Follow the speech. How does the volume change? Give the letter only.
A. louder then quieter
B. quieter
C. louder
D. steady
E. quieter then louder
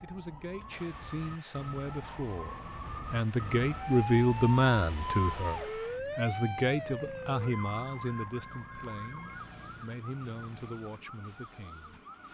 A.